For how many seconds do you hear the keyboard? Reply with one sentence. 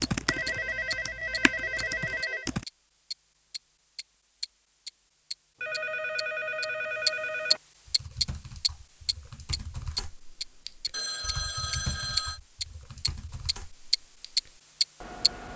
You can hear the keyboard for 10 seconds altogether.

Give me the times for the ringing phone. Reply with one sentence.
You can hear the ringing phone from 0.2 to 2.5 s, from 5.6 to 7.6 s and from 10.9 to 12.4 s.